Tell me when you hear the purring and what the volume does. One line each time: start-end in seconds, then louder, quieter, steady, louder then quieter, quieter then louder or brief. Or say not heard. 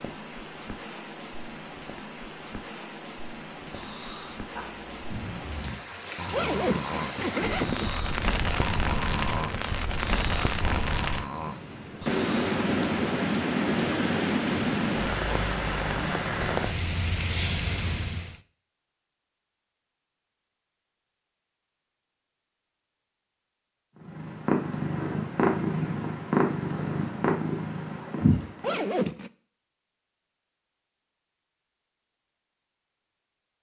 24.0-28.8 steady.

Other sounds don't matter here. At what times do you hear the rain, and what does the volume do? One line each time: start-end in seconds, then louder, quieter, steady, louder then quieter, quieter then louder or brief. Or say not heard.
0.0-18.4 louder.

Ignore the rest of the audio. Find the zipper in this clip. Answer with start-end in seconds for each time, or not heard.
6.3-8.0, 28.6-29.3.